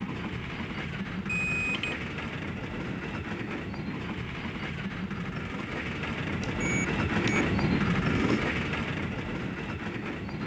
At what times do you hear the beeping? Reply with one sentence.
The beeping can be heard from 1.2 to 1.9 s and from 6.4 to 8.4 s.